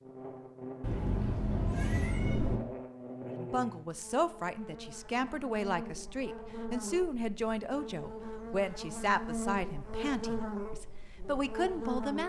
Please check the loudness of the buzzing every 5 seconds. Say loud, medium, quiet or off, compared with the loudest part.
medium, loud, loud.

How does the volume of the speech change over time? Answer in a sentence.
The loudness of the speech stays about the same.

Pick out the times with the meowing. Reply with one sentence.
The meowing can be heard from 0.8 to 2.6 s.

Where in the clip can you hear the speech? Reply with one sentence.
The speech can be heard from 3.4 to 12.2 s.